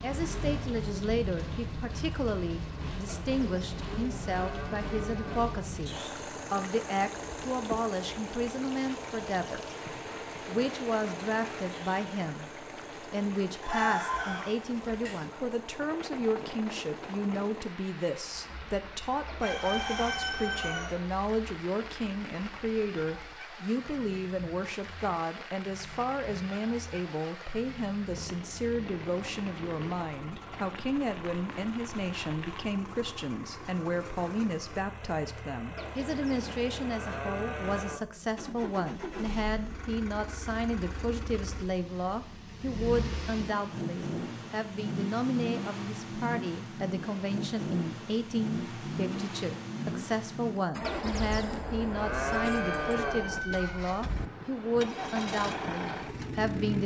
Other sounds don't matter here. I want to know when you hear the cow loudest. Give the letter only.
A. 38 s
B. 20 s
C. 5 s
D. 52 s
D.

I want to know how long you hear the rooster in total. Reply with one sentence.
The rooster can be heard for 5 seconds in total.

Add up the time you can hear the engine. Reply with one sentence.
You can hear the engine for 57 seconds altogether.